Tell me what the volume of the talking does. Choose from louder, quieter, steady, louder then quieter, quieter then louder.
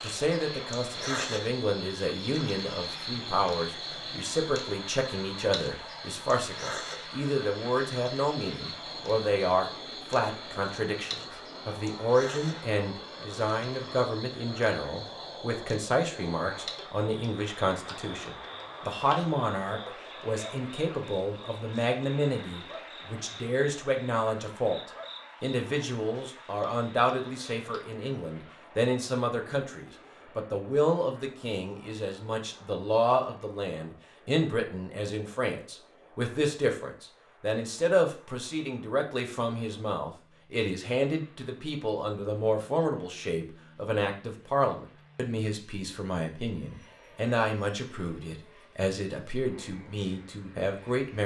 steady.